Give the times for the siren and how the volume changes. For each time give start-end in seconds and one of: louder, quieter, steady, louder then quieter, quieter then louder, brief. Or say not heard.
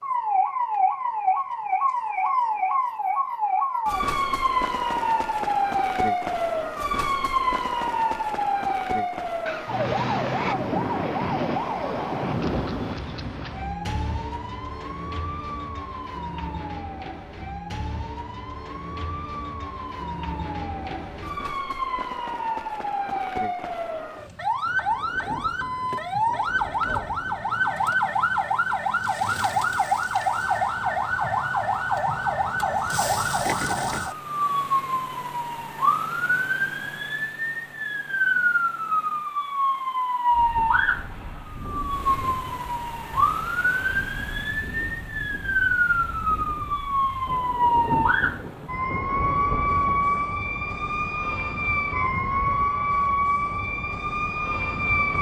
0.0-55.1 quieter then louder.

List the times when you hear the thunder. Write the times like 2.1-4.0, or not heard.
9.4-12.9, 24.6-27.9, 47.2-50.2.